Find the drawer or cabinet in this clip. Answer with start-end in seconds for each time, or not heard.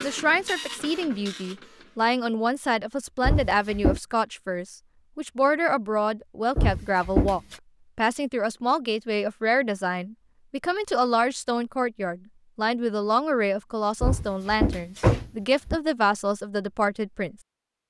3.2-4.0, 6.5-7.5, 14.0-15.8.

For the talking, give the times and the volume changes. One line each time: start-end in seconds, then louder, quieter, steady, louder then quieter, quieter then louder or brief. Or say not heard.
0.0-17.4 steady.